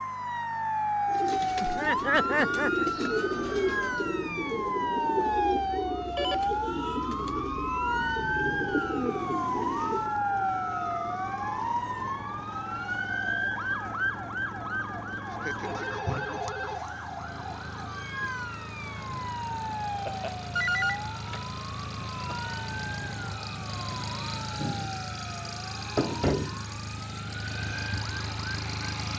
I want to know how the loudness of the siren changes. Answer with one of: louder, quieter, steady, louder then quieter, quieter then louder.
quieter.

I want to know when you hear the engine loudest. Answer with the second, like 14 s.
26 s.